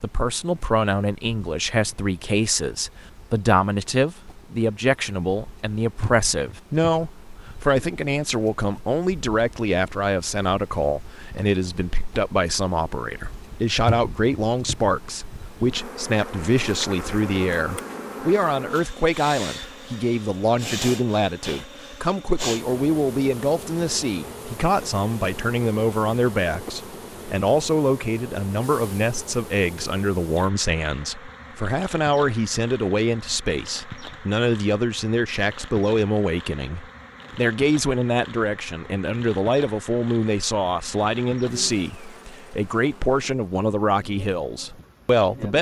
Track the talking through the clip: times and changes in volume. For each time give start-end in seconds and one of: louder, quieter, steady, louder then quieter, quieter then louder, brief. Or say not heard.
0.0-45.5 steady.